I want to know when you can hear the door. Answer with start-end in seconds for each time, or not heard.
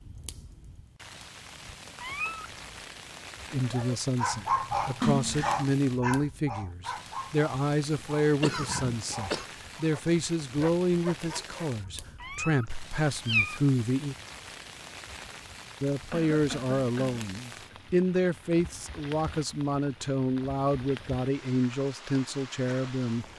not heard.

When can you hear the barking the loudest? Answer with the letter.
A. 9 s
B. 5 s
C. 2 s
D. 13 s
B.